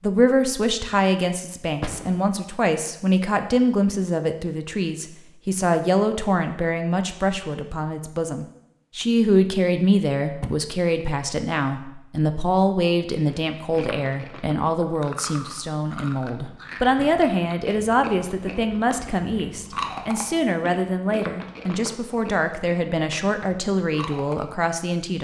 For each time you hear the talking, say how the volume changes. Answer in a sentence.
The talking can be heard from 0.0 to 25.1 s, at a steady volume.